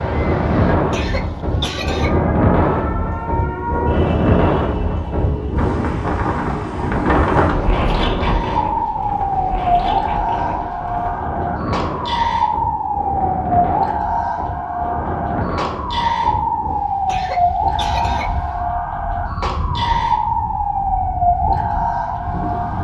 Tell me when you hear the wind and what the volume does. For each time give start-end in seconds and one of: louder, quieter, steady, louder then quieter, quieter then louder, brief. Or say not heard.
0.0-22.7 quieter.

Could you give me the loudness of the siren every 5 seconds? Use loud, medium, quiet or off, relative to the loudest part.
medium, loud, loud, loud, loud.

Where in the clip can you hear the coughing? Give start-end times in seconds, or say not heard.
0.9-2.1, 17.1-18.6.